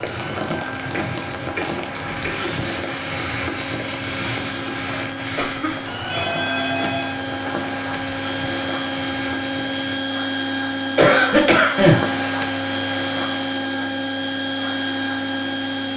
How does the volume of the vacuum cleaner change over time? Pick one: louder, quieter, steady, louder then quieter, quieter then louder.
louder.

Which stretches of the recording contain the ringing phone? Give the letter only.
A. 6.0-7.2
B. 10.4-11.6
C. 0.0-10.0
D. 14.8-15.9
A.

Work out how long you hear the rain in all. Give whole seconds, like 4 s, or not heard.
10 s.